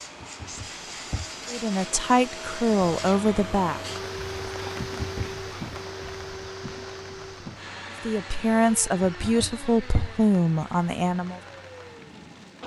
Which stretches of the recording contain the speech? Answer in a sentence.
You can hear the speech from 1.5 to 3.8 s and from 8.0 to 11.4 s.